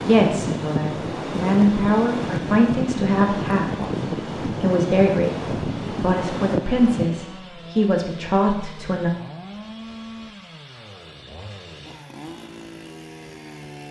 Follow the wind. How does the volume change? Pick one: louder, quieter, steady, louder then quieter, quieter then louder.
steady.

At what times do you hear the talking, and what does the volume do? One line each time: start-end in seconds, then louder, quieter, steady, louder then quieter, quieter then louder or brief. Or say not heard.
0.0-9.1 steady.